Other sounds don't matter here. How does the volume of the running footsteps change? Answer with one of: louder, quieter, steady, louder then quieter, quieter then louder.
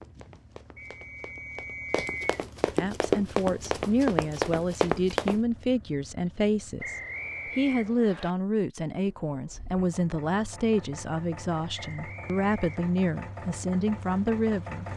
louder.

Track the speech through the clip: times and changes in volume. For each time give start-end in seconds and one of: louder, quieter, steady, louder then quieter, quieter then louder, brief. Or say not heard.
2.8-14.8 steady.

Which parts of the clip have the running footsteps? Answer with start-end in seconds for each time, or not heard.
0.0-5.4.